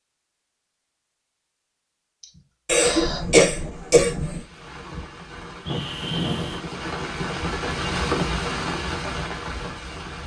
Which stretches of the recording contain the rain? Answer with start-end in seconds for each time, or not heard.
4.2-10.2.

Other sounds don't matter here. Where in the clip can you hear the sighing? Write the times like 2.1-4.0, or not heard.
2.2-3.2, 5.7-6.6.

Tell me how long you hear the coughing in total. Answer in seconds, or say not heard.
2 s.